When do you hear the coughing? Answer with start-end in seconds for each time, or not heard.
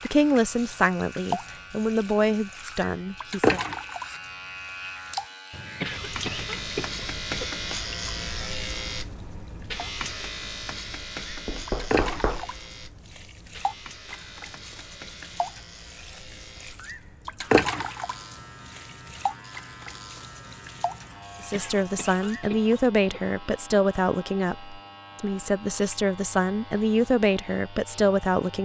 5.8-7.5, 21.5-23.2.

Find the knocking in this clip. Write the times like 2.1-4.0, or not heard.
11.2-12.5.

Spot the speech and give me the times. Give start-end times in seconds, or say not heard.
0.0-3.6, 21.4-28.5.